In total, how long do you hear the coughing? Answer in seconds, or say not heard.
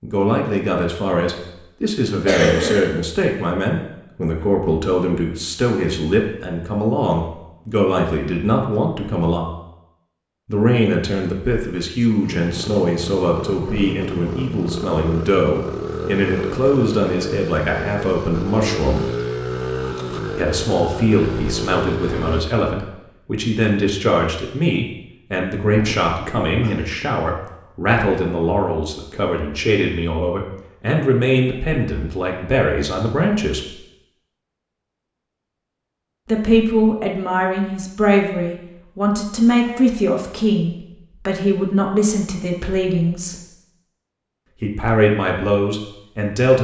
2 s.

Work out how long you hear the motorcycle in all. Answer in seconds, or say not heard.
10 s.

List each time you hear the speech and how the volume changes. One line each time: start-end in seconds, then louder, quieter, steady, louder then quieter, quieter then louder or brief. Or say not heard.
0.0-9.4 steady
10.4-19.1 steady
20.4-33.7 steady
36.2-43.4 steady
44.6-46.6 brief.